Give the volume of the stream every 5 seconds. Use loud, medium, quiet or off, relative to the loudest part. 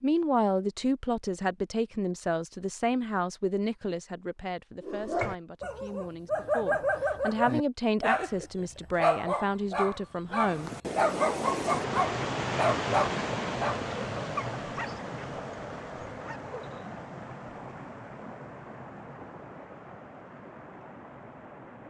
off, off, loud, medium, quiet.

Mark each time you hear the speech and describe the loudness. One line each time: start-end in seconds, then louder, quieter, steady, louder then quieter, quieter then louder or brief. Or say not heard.
0.0-10.7 quieter then louder.